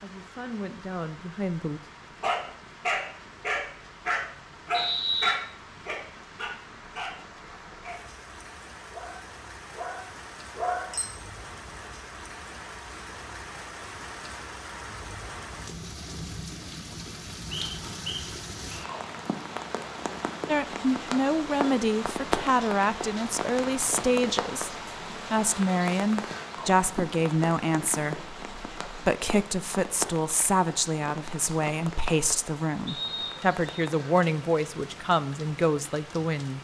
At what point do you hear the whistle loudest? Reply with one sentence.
The loudest moment of the whistle is at 5 seconds.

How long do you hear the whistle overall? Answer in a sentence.
You can hear the whistle for 3 seconds altogether.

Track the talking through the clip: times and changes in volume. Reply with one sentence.
You can hear the talking briefly from 0.0 to 1.8 s; and from 20.4 to 36.5 s, at a steady volume.